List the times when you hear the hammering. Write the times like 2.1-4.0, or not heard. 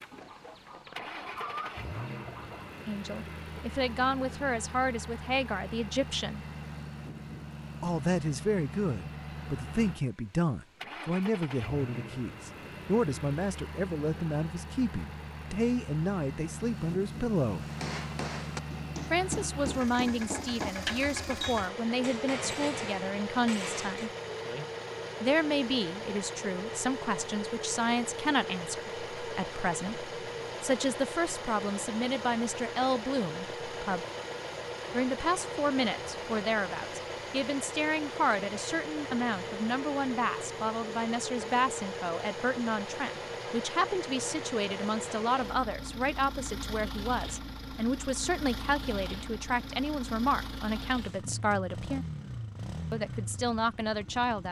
17.6-24.1.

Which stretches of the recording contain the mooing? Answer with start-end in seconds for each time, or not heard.
not heard.